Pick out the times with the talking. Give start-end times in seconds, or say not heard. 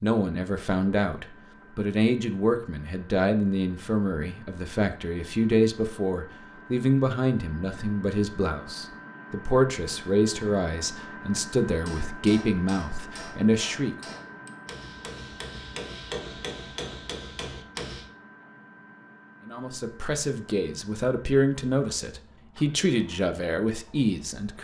0.0-13.9, 19.4-24.6.